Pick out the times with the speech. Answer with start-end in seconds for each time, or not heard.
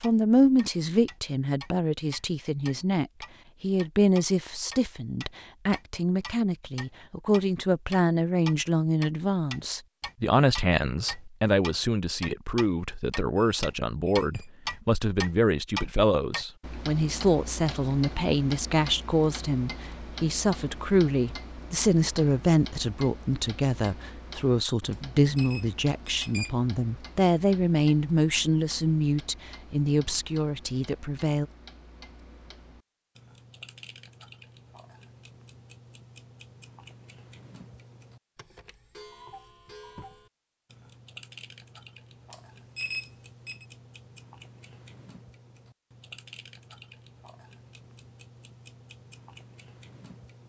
0.0-31.4.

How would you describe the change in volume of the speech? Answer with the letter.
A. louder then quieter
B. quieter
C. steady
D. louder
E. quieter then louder
C.